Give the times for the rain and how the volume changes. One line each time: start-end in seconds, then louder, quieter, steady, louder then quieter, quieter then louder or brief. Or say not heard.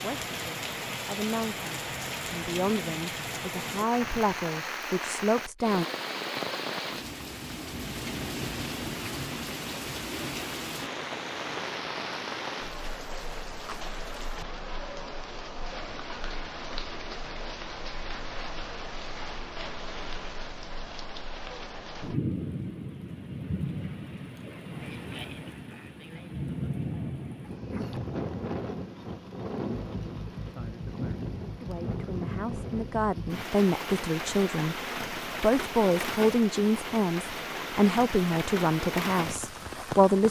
0.0-40.2 steady.